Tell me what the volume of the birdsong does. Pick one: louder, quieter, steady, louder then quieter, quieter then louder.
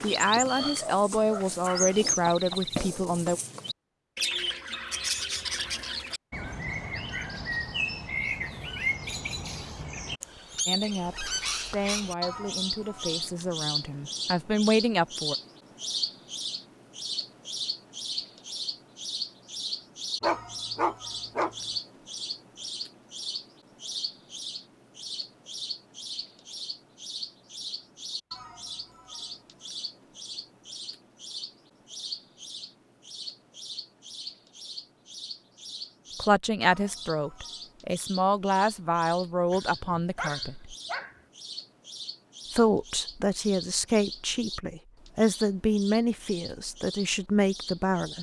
quieter.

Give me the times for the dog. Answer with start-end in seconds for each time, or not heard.
0.5-2.0, 20.2-21.6, 39.5-41.2.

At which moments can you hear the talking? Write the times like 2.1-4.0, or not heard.
0.0-3.4, 10.7-15.3, 36.2-40.8, 42.5-48.1.